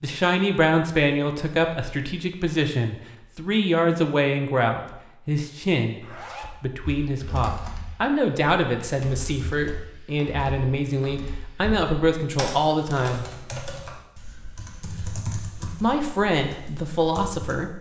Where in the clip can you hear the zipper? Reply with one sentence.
You can hear the zipper from 6.0 to 6.6 s.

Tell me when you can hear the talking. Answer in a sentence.
The talking can be heard from 0.0 to 6.0 s, from 6.6 to 13.2 s and from 15.8 to 17.7 s.